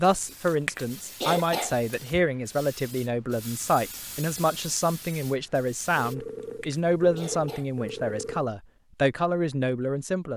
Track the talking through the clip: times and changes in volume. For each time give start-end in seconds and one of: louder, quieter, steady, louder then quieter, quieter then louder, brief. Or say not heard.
0.0-10.3 steady.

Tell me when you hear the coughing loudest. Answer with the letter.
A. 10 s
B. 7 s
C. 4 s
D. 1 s
D.